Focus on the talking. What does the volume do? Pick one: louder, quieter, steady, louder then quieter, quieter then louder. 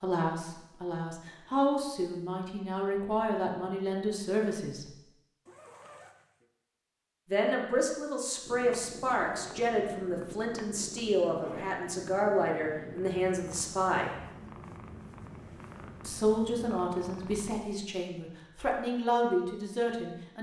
steady.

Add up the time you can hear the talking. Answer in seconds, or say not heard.
16 s.